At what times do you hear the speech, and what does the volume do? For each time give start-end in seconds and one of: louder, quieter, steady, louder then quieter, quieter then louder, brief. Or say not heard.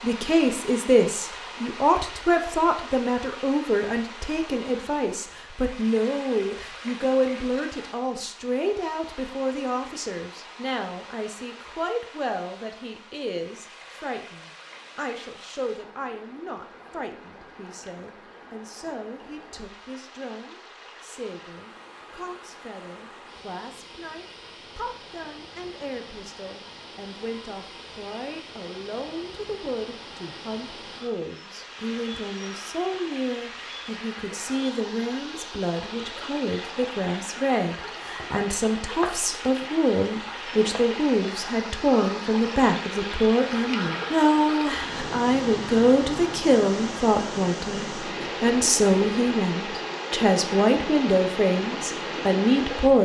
0.0-52.9 quieter then louder.